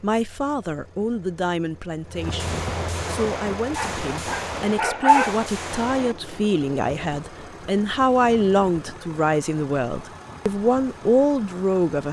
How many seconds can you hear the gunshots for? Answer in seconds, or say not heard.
4 s.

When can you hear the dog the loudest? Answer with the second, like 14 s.
5 s.